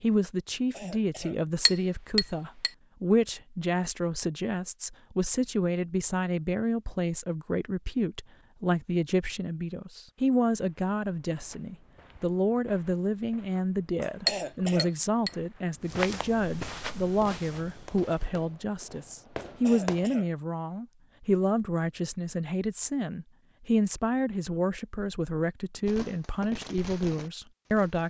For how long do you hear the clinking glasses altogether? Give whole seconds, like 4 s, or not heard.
2 s.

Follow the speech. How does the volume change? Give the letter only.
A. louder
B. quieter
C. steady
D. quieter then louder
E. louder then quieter
C.